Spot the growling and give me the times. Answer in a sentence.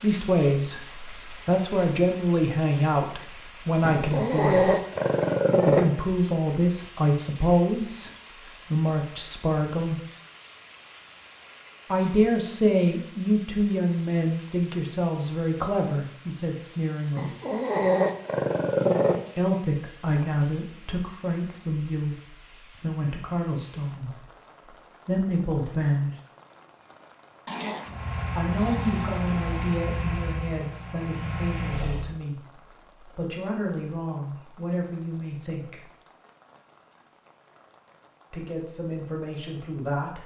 The growling can be heard from 3.8 to 5.8 s, from 17.1 to 19.2 s and from 27.4 to 29.9 s.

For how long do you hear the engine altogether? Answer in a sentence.
You can hear the engine for 4 seconds altogether.